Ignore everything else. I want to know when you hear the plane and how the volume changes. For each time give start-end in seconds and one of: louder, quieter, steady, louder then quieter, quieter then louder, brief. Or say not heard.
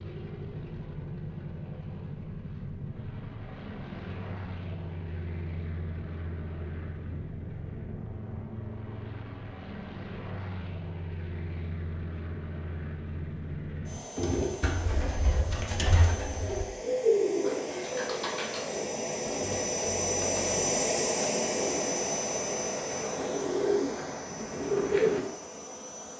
0.0-26.1 louder.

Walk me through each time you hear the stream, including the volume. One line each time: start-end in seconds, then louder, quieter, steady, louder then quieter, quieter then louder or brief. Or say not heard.
not heard.